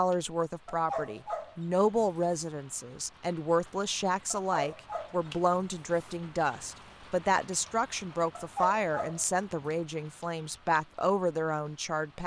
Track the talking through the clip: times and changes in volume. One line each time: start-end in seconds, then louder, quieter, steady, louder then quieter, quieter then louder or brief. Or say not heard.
0.0-12.2 steady.